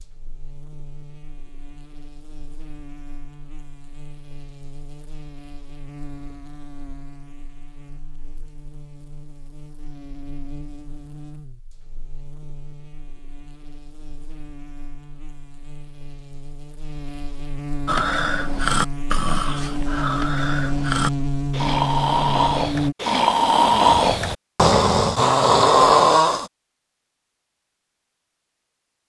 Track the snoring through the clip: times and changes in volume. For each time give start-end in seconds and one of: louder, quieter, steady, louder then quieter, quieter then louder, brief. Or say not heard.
17.9-26.4 louder.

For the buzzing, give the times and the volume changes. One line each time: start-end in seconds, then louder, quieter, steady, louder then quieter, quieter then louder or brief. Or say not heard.
0.0-22.9 louder.